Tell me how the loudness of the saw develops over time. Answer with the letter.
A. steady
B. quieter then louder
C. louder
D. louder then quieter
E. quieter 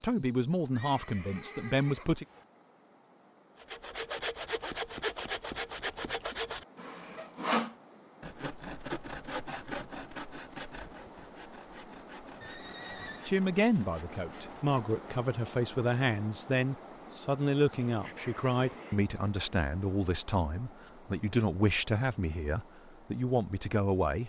E.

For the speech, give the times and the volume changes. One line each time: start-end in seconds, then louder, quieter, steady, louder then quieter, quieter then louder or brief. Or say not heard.
0.0-2.2 brief
13.2-24.2 steady.